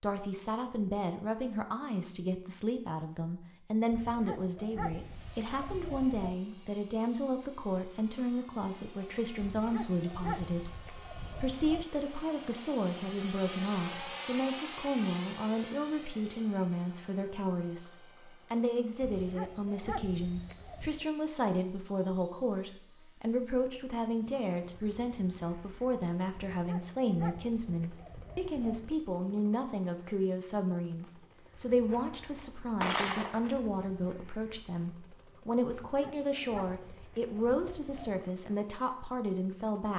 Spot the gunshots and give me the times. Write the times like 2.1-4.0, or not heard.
31.9-33.6.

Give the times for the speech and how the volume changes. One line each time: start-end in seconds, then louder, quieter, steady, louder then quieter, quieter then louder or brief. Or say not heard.
0.0-39.9 steady.